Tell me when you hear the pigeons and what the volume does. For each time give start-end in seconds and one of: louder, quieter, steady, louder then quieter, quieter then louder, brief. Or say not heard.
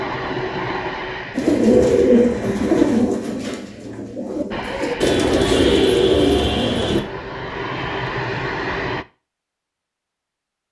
1.4-7.0 quieter then louder.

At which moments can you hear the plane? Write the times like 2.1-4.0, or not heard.
0.0-3.0, 4.5-9.1.